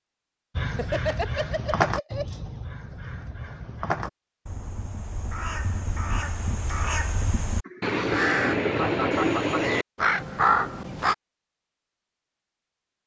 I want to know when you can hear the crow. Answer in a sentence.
The crow can be heard from 0.6 to 11.2 s.